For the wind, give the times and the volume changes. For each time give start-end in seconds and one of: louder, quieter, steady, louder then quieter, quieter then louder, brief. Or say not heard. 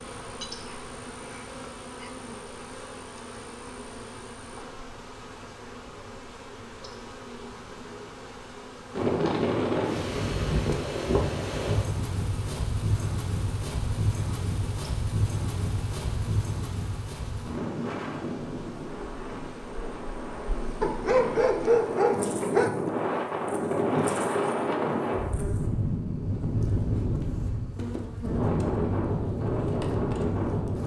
8.9-30.8 quieter then louder.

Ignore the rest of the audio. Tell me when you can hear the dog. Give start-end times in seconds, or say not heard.
0.4-2.1, 20.8-22.8.